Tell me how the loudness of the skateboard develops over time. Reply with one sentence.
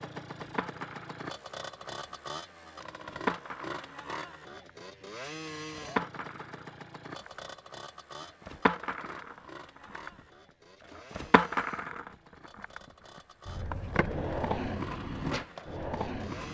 The volume of the skateboard stays about the same.